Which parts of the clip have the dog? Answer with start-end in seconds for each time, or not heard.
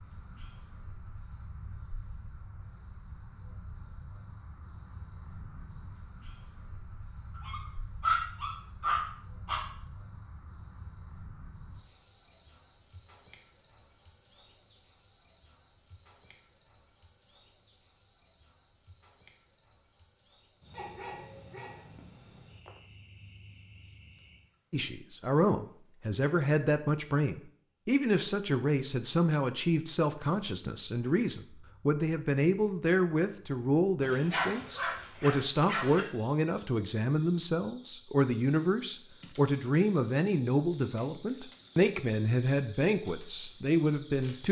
7.3-9.7, 20.7-21.9, 34.0-36.0.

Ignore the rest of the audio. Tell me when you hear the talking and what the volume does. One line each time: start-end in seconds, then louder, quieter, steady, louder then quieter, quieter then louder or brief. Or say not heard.
24.7-44.4 steady.